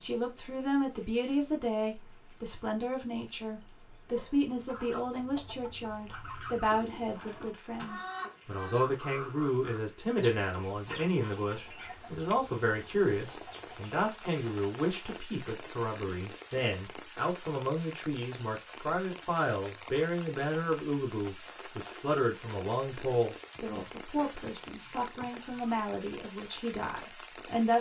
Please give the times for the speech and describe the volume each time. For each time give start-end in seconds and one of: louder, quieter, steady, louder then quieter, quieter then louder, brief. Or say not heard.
0.0-27.7 steady.